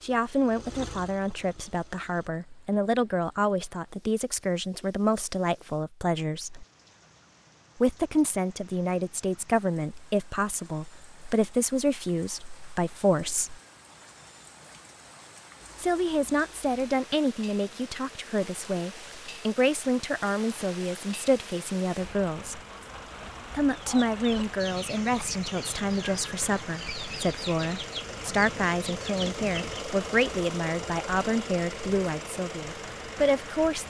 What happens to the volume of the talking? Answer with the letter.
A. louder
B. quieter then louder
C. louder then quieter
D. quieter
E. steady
E.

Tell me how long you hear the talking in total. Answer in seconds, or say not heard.
30 s.